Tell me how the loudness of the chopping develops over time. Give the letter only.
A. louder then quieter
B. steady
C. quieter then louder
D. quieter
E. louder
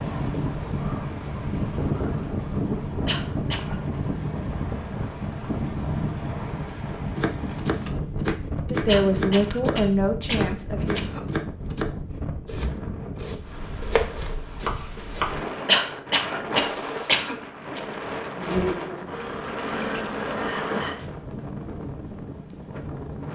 C.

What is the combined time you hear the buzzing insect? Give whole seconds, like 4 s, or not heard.
3 s.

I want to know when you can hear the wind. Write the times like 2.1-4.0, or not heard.
0.0-23.3.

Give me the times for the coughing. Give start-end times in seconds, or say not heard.
3.0-3.8, 8.8-11.2, 15.7-17.8.